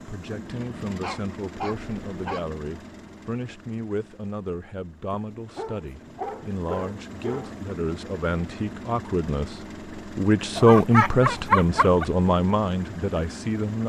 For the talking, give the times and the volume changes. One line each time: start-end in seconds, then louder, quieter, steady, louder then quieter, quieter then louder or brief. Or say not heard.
0.1-13.8 louder.